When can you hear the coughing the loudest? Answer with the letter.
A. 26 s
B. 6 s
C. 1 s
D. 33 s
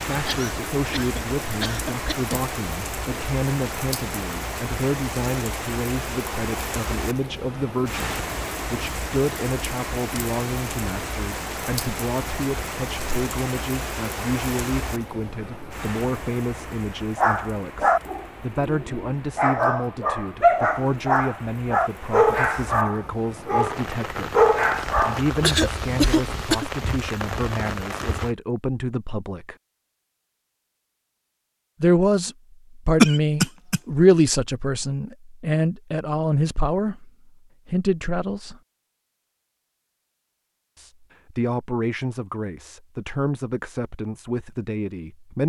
D.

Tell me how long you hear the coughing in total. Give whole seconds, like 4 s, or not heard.
4 s.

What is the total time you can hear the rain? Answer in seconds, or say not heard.
28 s.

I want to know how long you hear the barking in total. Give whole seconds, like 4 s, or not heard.
8 s.